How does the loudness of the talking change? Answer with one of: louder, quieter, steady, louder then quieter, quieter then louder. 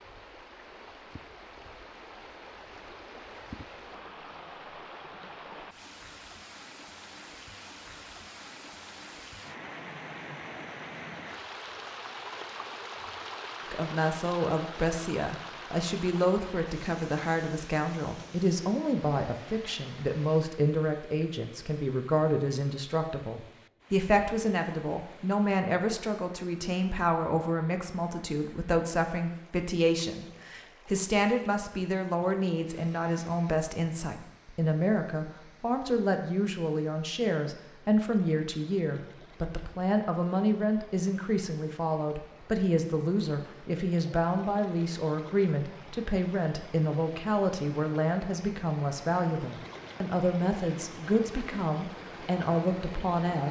steady.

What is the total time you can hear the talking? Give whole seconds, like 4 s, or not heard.
40 s.